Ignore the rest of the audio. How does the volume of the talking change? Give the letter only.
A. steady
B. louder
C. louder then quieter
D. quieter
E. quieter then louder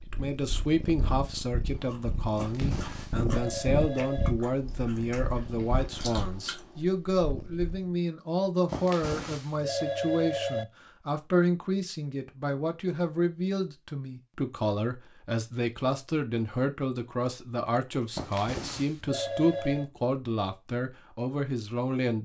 A.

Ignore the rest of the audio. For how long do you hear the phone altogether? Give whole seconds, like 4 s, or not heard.
6 s.